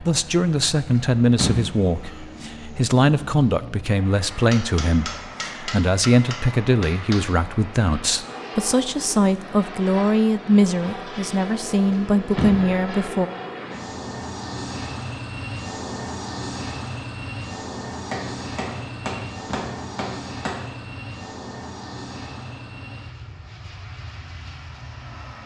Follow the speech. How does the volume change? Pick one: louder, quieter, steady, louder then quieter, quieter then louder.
steady.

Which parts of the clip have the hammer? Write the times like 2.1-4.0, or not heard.
4.5-7.3, 18.1-20.7.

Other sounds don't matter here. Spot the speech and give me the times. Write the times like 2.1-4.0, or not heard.
0.0-13.3.